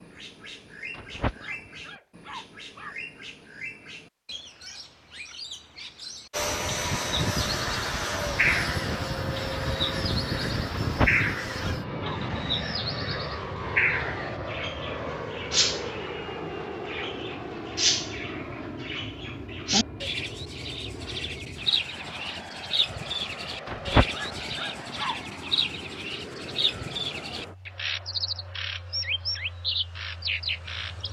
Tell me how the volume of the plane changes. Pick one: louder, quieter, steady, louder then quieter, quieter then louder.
quieter.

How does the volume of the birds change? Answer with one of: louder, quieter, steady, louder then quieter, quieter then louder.
louder.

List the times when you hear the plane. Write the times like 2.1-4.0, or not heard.
6.3-31.0.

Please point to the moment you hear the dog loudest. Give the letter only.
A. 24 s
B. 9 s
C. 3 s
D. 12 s
A.